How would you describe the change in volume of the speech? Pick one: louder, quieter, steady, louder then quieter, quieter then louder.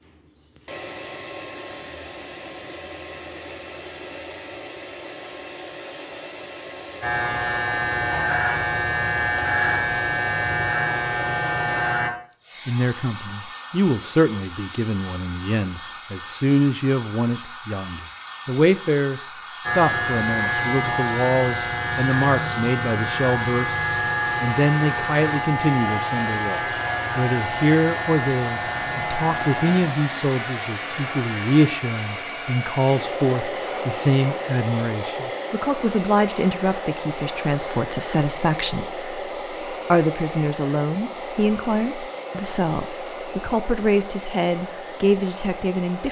steady.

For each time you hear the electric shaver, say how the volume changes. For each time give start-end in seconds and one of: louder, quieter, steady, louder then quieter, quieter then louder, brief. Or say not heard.
7.0-12.1 steady
19.6-31.6 quieter.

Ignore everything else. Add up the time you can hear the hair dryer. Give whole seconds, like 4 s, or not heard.
46 s.